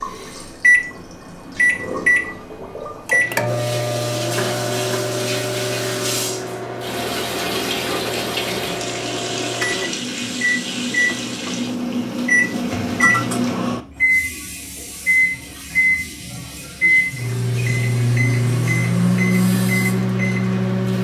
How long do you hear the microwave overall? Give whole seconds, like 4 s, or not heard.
21 s.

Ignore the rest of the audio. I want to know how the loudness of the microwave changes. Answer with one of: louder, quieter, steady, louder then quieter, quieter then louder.
quieter then louder.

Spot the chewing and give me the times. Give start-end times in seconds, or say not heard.
not heard.